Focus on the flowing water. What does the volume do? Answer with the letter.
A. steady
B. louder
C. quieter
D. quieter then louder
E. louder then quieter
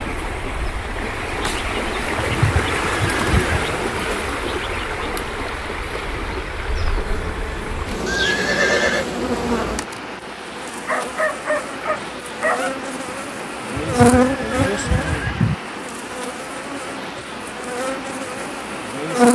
C.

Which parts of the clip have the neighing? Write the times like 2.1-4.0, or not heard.
2.1-3.6, 8.1-9.1, 13.8-15.6.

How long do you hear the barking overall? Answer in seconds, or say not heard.
2 s.